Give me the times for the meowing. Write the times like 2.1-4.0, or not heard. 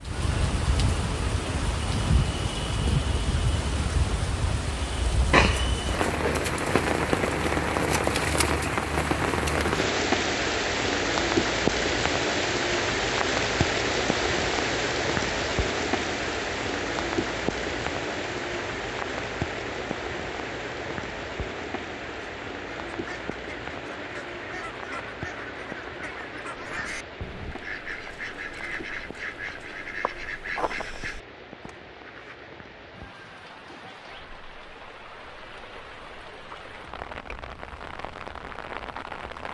5.3-6.5.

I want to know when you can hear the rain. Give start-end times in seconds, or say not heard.
0.0-39.4.